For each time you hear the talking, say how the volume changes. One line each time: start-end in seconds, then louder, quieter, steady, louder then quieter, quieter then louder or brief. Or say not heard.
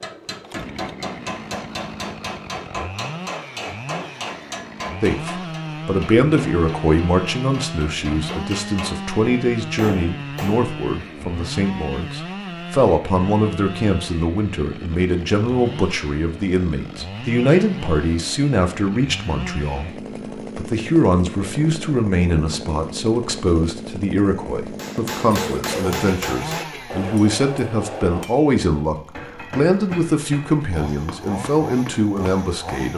5.0-32.9 steady.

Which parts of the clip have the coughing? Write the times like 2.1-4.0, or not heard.
25.3-26.8.